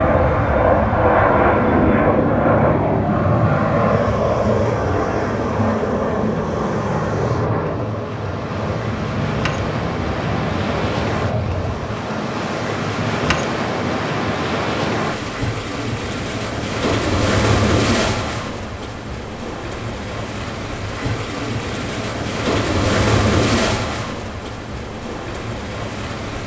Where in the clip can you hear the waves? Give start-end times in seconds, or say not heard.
0.0-26.4.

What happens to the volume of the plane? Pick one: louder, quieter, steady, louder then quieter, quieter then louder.
quieter.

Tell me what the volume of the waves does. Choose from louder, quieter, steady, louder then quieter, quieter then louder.
louder.